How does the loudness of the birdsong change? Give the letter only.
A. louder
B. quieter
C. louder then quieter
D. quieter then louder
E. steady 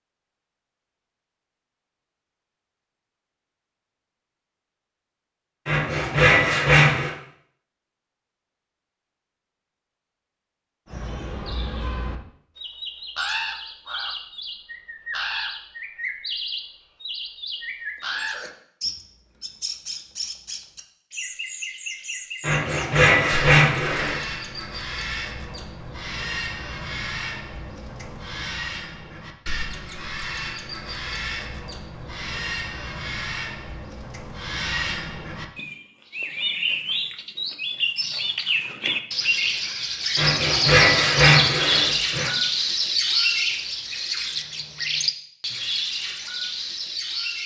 A.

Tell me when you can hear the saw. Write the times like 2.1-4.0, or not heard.
5.7-7.2, 22.4-24.2, 40.1-42.3.